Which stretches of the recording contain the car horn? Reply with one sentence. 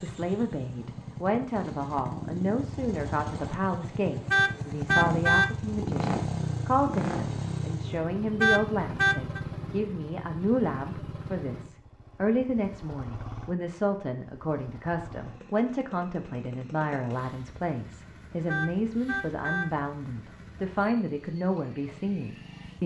You can hear the car horn from 4.3 to 5.5 s, from 8.4 to 9.4 s and from 18.4 to 19.6 s.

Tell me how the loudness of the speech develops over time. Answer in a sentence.
The volume of the speech stays about the same.